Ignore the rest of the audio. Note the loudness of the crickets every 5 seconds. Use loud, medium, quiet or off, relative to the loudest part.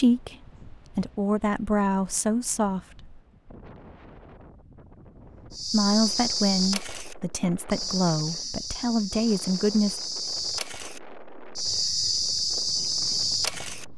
off, loud, loud.